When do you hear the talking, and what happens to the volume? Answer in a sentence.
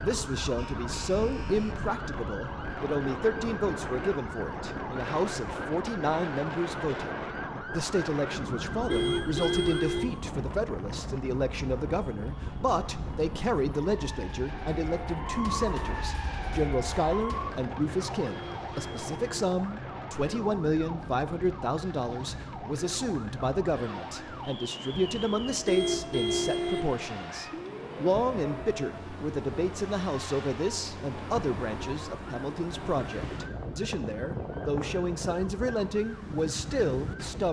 The talking can be heard from 0.0 to 37.4 s, at a steady volume.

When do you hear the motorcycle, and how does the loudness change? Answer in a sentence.
The motorcycle can't be heard in this clip.